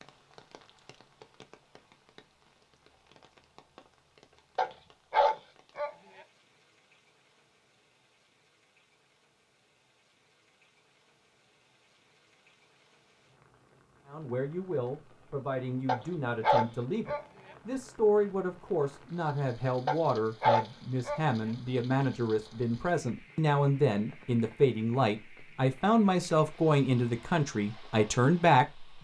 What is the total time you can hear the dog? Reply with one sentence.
The dog can be heard for 4 seconds in total.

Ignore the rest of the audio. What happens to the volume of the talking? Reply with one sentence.
The loudness of the talking goes up.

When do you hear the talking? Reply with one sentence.
You can hear the talking from 14.1 to 28.9 s.